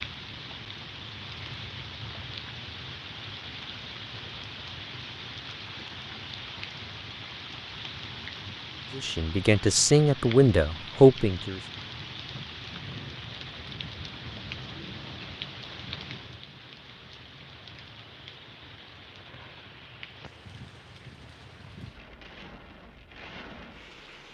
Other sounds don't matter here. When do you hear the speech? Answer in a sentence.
You can hear the speech from 8.9 to 11.6 s.